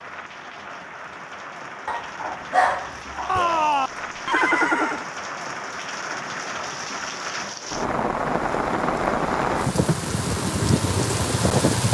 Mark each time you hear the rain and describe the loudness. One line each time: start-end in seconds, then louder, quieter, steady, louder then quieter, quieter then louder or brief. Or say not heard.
0.0-11.8 louder.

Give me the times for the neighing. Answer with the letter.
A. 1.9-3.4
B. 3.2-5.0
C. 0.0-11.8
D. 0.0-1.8
B.